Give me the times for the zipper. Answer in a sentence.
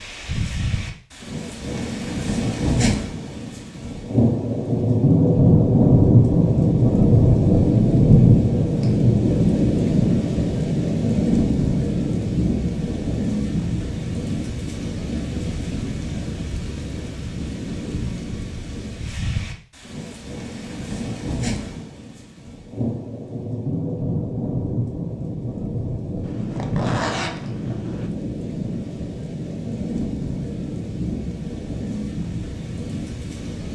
You can hear the zipper from 26.2 to 28.1 s.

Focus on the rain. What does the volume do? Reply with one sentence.
The volume of the rain goes down.